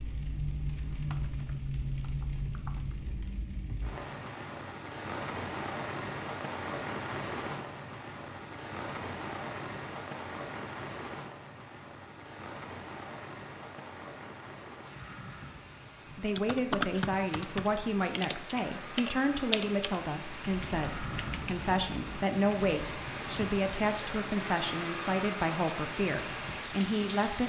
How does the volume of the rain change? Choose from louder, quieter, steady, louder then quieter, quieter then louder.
quieter then louder.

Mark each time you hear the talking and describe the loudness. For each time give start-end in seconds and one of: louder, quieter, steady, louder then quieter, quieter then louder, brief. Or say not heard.
16.1-27.4 steady.